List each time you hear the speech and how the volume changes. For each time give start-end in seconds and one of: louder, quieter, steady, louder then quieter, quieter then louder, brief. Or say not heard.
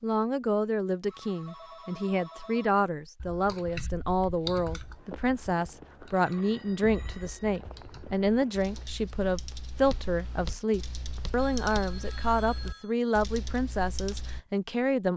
0.0-15.1 steady.